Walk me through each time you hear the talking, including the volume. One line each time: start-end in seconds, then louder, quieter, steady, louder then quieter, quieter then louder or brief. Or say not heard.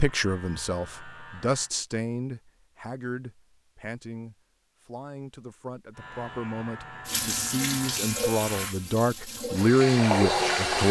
0.0-10.8 quieter then louder.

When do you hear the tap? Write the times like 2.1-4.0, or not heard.
7.0-10.8.